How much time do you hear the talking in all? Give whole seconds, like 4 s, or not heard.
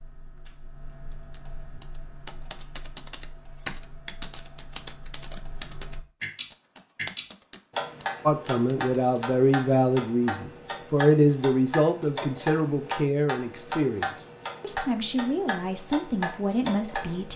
9 s.